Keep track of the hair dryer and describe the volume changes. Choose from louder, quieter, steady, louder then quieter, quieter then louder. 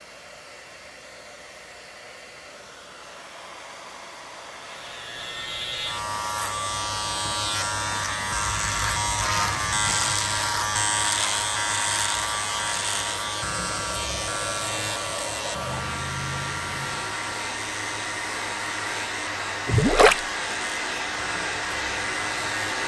louder.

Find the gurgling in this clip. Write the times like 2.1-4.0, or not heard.
19.6-20.2.